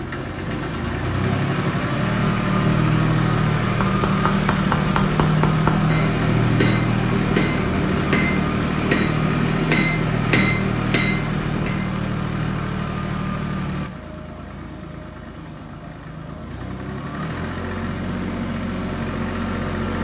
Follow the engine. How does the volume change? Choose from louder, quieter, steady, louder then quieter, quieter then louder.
quieter.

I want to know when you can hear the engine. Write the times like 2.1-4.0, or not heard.
0.0-19.9.